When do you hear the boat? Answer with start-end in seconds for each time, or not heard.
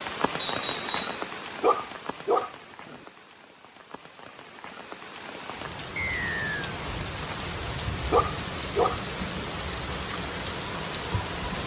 not heard.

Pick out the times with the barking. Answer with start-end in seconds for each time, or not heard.
1.6-3.0, 8.1-9.0.